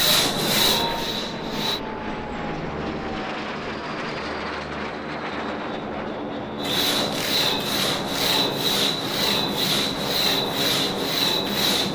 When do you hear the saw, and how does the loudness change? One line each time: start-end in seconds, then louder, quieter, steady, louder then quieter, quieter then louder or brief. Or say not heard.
0.0-1.8 brief
6.5-11.8 steady.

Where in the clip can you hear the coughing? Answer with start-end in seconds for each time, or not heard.
not heard.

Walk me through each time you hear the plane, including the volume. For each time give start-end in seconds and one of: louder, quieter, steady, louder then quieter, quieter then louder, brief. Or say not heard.
0.1-11.8 steady.